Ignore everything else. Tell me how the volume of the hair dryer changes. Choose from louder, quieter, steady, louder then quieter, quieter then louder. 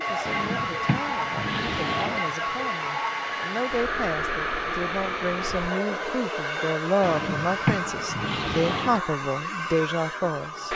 steady.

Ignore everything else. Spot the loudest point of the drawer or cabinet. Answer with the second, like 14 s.
8 s.